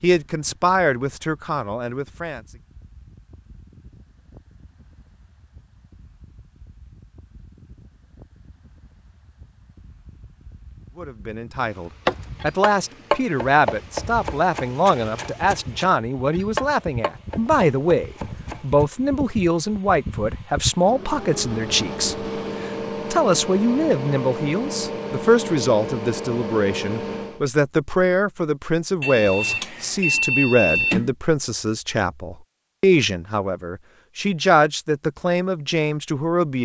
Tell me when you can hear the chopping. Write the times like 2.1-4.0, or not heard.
12.1-18.9.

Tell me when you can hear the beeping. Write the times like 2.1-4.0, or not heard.
29.0-31.1.